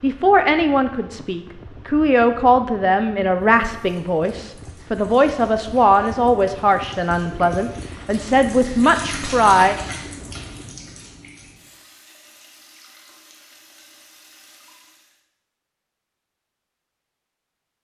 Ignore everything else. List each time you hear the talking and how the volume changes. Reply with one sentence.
The talking can be heard from 0.0 to 9.8 s, at a steady volume.